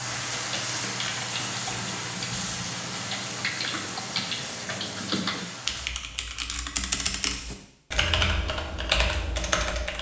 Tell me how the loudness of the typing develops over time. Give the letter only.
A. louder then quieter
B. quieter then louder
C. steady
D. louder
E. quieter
D.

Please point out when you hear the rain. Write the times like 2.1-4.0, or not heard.
0.0-6.0.